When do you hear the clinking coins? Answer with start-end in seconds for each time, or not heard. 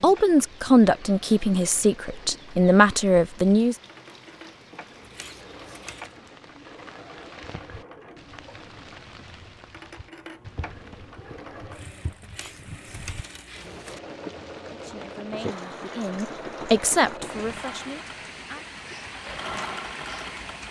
5.0-6.2, 12.2-14.0.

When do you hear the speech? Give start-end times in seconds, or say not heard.
0.0-3.8, 14.7-18.6.